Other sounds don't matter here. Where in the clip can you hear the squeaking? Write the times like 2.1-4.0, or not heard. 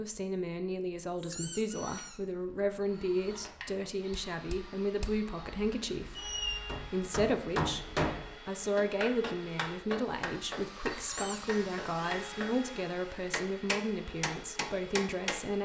1.2-2.2, 6.2-6.7, 11.0-11.5.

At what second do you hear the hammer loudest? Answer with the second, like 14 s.
8 s.